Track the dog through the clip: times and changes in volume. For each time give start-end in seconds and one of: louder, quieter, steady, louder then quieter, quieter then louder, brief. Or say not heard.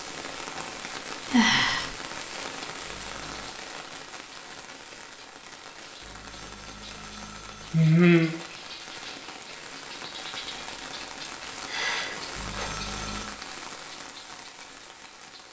not heard.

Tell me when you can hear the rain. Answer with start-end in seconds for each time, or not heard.
0.0-15.4.